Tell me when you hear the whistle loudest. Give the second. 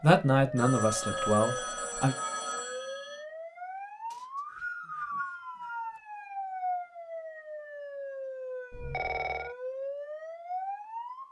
5 s.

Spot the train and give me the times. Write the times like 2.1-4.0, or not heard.
not heard.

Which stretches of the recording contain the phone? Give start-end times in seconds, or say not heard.
0.6-3.2, 8.7-9.6.